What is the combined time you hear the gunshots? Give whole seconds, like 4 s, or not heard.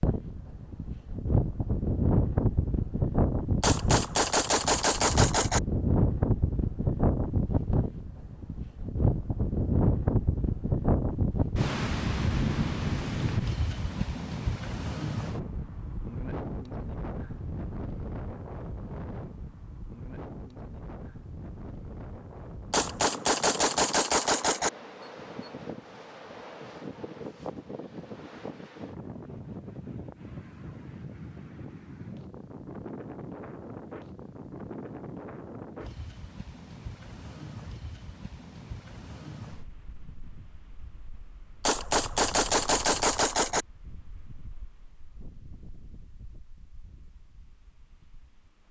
6 s.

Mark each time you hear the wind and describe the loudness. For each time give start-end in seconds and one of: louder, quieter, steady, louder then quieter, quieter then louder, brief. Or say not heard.
0.0-48.6 quieter.